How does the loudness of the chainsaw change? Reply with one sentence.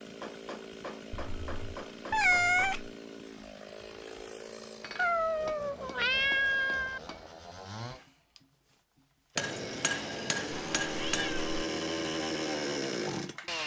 The volume of the chainsaw goes up.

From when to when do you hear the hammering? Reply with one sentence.
You can hear the hammering from 0.2 to 2.7 s, from 4.8 to 7.3 s and from 9.3 to 11.3 s.